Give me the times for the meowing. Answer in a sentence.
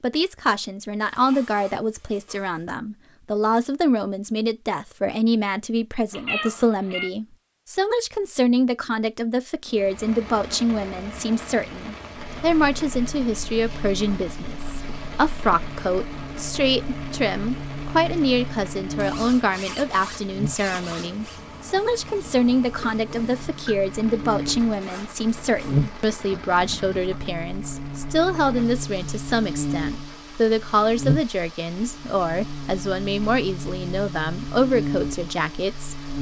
You can hear the meowing from 6.1 to 7.1 s and from 22.8 to 23.8 s.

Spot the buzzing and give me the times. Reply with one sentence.
You can hear the buzzing from 12.2 to 36.1 s.